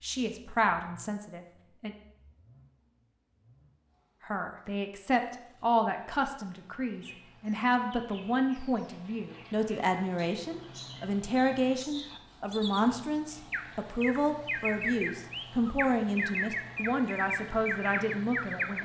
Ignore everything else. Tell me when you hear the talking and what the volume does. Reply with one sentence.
The talking can be heard briefly from 0.0 to 1.9 s; and from 4.2 to 18.8 s, at a steady volume.